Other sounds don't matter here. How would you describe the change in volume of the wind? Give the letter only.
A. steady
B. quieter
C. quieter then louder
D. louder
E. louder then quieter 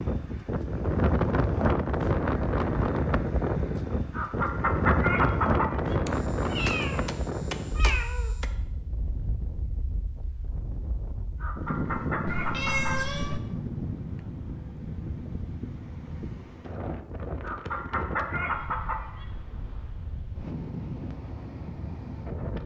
B.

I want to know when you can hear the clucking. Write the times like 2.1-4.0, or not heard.
4.1-6.0, 11.4-13.2, 17.4-19.2.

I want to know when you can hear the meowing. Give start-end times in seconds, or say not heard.
6.0-8.5, 12.2-13.4.